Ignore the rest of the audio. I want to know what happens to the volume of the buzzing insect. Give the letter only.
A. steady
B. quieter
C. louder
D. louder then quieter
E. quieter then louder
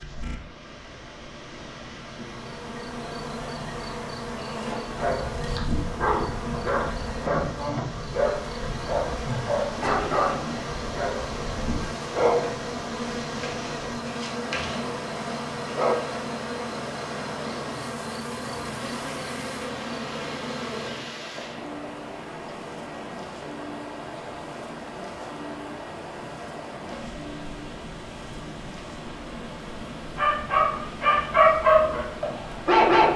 B.